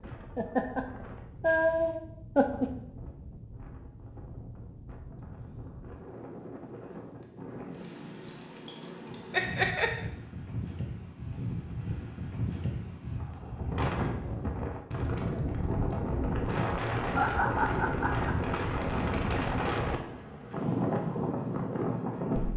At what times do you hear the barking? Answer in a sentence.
The barking can't be heard in this clip.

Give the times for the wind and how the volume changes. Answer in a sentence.
The wind can be heard from 0.0 to 22.5 s, getting louder.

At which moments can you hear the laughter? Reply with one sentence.
The laughter can be heard from 0.3 to 0.8 s, from 1.4 to 2.6 s, from 9.3 to 9.9 s and from 16.6 to 18.6 s.